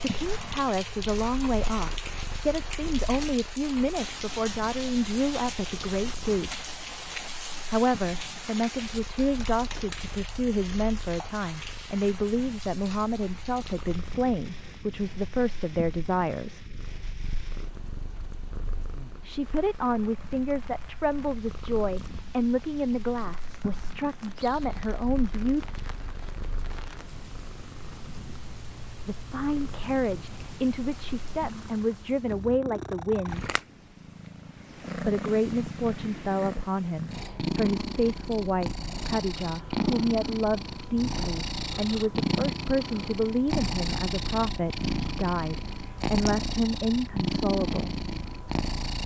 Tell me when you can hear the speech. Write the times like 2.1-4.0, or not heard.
0.0-6.7, 7.7-16.8, 19.2-25.6, 29.1-33.5, 35.0-48.0.